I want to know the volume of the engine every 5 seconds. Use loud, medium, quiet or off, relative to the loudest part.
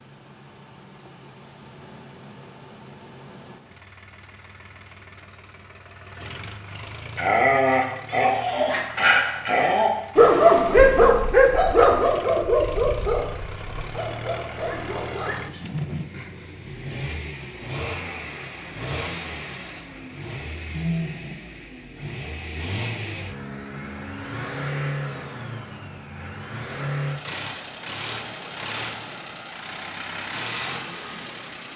quiet, medium, medium, loud, loud, loud, loud.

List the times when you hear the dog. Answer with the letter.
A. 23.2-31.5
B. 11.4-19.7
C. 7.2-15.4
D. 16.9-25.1
C.